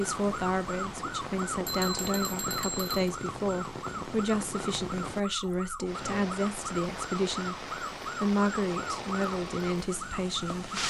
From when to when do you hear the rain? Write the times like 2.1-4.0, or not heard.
0.0-10.8.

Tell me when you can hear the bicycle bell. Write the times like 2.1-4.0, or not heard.
1.6-3.1.